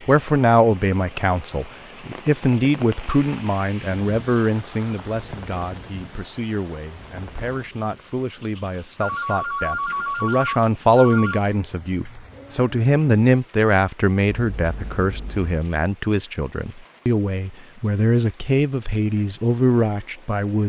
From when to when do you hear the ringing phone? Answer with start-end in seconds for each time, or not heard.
4.3-5.2, 9.0-11.4, 14.3-15.6.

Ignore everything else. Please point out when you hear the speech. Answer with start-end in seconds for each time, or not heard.
0.0-20.6.